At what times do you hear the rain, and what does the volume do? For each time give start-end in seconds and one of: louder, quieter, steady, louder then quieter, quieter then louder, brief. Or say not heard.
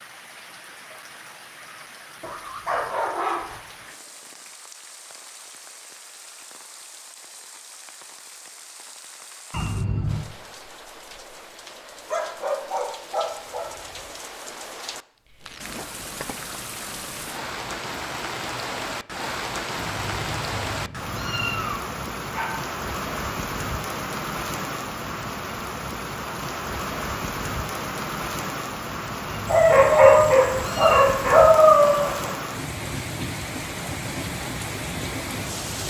0.0-35.8 louder.